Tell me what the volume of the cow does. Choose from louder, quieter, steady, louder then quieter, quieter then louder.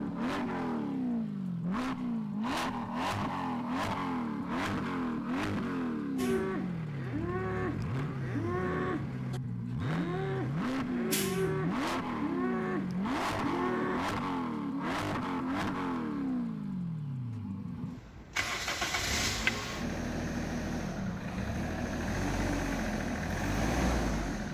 steady.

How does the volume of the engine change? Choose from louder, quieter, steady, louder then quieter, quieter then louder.
steady.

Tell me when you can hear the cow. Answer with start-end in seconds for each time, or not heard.
6.2-14.0.